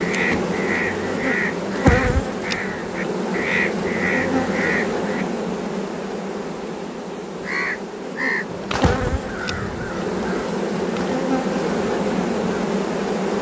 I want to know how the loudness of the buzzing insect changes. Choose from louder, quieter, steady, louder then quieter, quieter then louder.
quieter then louder.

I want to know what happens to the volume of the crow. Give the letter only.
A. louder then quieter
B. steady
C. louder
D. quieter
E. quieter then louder
D.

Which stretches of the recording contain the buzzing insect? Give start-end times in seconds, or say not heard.
0.0-13.3.